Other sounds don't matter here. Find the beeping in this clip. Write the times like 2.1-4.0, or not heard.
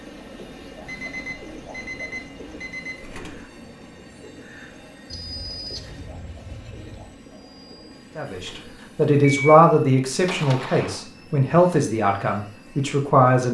0.8-3.0, 5.1-7.1, 9.2-11.1.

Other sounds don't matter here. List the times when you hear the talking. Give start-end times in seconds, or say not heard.
8.2-13.4.